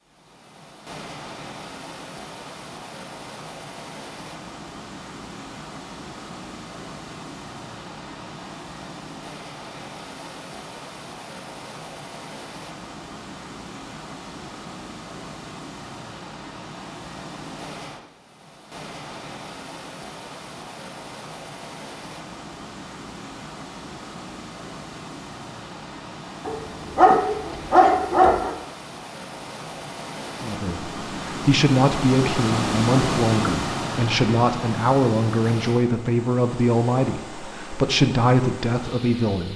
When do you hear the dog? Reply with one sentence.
You can hear the dog from 26.4 to 28.6 s.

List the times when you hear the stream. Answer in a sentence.
The stream can be heard from 0.0 to 39.5 s.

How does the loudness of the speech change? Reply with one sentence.
The loudness of the speech stays about the same.